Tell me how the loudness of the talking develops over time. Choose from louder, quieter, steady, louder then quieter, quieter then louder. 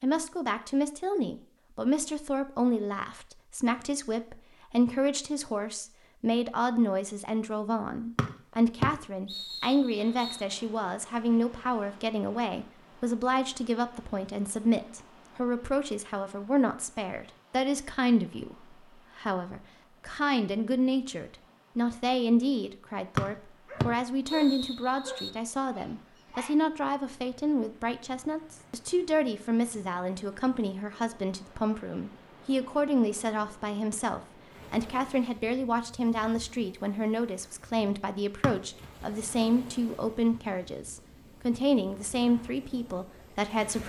steady.